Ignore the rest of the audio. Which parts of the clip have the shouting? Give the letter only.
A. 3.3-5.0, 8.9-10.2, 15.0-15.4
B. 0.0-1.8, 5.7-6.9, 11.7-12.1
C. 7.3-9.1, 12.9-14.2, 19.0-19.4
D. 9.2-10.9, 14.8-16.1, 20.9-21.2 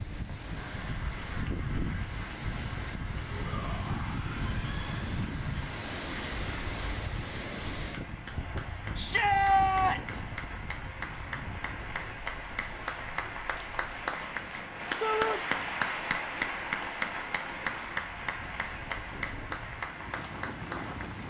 A.